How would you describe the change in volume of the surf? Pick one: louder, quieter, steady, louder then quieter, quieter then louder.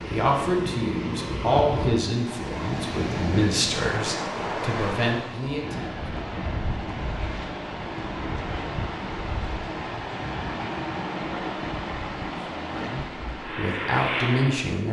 steady.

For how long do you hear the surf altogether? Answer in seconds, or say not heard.
15 s.